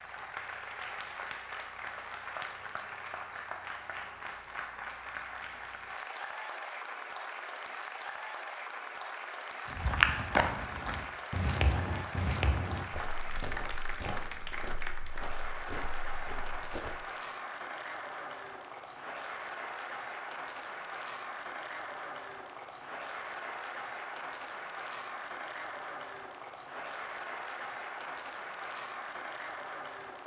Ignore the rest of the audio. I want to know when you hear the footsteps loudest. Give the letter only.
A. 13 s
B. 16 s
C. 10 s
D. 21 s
C.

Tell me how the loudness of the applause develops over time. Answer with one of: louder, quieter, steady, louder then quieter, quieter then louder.
steady.